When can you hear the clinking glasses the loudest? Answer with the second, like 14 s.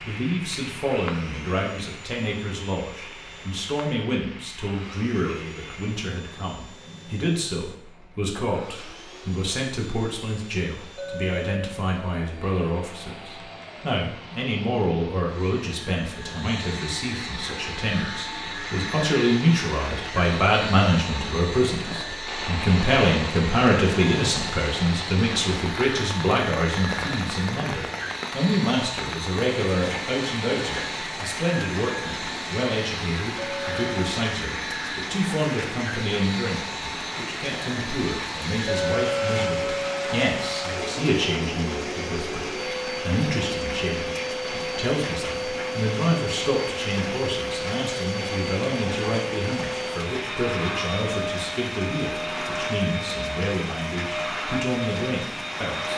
39 s.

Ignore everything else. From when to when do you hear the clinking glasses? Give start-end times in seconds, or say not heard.
10.9-11.8, 33.4-34.1, 38.6-40.9.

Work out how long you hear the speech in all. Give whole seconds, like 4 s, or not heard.
56 s.